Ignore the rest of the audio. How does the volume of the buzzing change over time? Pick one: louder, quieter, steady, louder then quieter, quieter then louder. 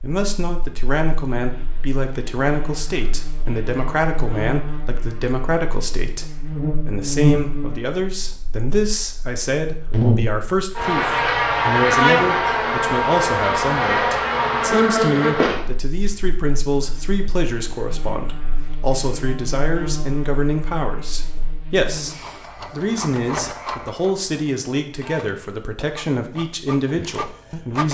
louder then quieter.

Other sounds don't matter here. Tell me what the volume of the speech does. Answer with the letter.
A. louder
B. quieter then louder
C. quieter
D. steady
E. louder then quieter
D.